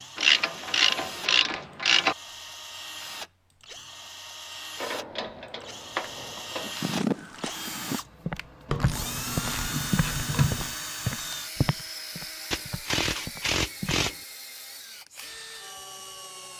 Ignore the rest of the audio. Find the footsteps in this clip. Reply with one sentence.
You can hear the footsteps from 6.6 to 14.0 s.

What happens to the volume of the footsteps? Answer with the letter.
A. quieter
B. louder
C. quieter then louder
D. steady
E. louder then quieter
A.